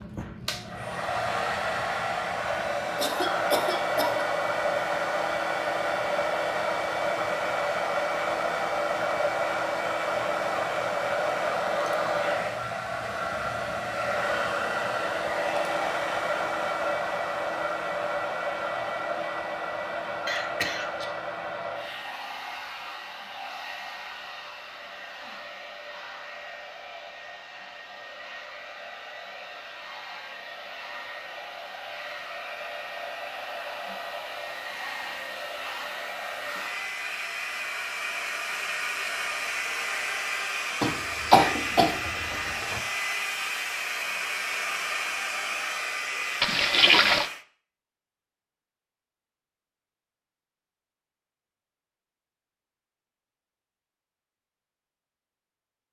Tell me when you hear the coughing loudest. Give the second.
41 s.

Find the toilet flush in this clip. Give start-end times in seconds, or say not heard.
46.4-47.3.